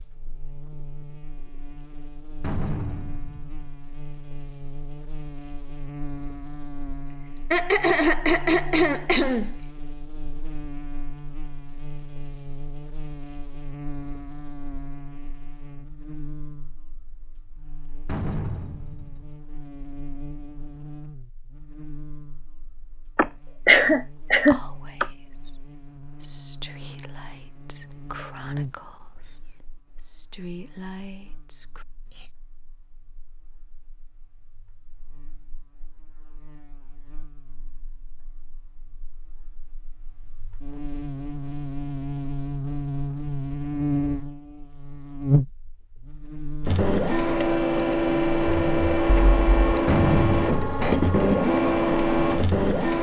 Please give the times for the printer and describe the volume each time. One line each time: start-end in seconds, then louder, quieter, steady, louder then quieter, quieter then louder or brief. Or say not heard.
46.6-52.9 steady.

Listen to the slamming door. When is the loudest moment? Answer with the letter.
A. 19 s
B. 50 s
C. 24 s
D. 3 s
B.